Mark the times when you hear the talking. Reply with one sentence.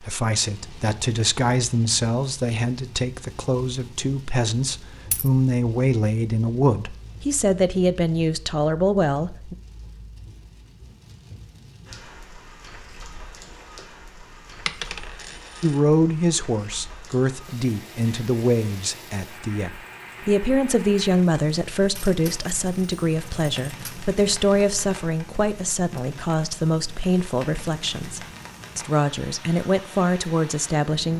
You can hear the talking from 0.0 to 9.6 s and from 15.6 to 31.1 s.